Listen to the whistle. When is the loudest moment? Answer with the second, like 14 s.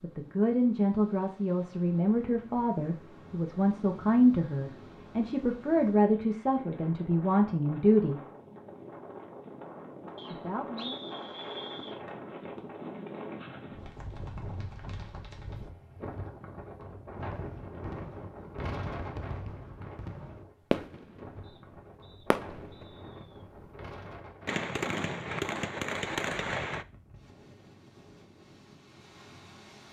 11 s.